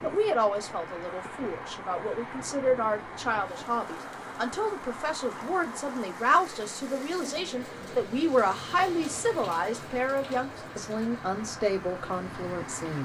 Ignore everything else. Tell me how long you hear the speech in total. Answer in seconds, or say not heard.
13 s.